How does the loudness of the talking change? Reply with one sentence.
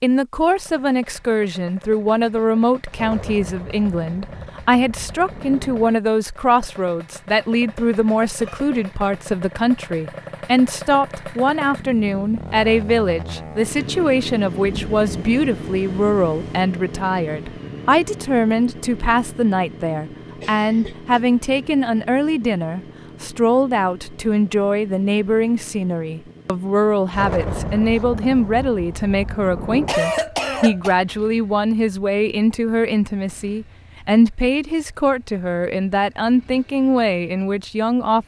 The loudness of the talking stays about the same.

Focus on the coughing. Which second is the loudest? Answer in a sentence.
The volume of the coughing peaks at 30 seconds.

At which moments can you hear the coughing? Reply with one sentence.
The coughing can be heard from 7.8 to 8.9 s, from 20.4 to 21.2 s and from 29.9 to 30.9 s.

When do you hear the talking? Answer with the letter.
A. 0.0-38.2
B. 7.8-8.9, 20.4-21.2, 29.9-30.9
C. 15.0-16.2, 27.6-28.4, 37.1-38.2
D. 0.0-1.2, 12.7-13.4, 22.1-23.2
A.